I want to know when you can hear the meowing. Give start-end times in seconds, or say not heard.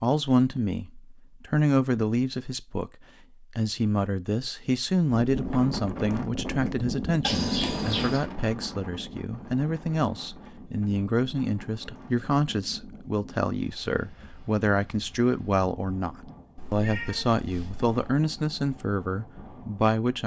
7.2-8.2, 16.6-17.9.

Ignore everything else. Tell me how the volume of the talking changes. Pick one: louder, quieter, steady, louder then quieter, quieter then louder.
steady.